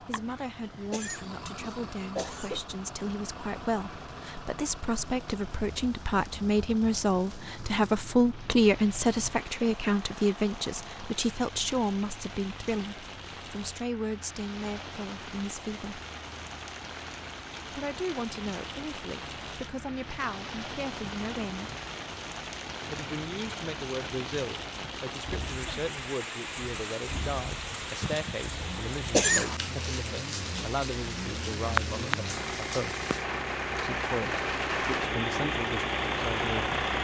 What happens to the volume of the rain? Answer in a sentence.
The volume of the rain goes up.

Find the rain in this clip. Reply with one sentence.
You can hear the rain from 0.0 to 36.9 s.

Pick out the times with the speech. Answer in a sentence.
The speech can be heard from 0.0 to 16.0 s, from 17.7 to 21.7 s, from 22.9 to 33.0 s and from 33.8 to 36.7 s.